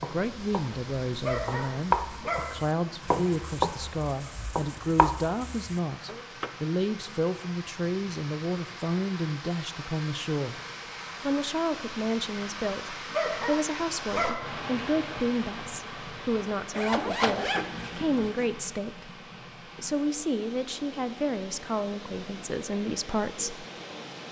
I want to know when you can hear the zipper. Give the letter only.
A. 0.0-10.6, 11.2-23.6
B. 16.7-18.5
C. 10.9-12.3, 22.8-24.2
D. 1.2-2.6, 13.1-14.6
B.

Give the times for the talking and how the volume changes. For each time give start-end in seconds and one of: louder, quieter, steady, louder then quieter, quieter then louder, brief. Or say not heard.
0.0-10.6 steady
11.2-23.6 steady.